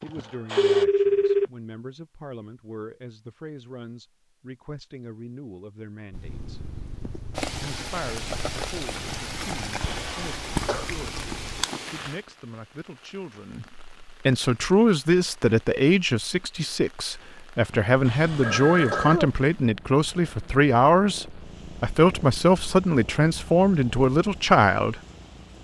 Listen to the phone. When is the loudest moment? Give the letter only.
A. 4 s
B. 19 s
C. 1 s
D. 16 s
C.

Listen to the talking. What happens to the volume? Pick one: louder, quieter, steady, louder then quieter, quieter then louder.
louder.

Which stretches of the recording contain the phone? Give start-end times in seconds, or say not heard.
0.6-1.5, 18.4-19.2.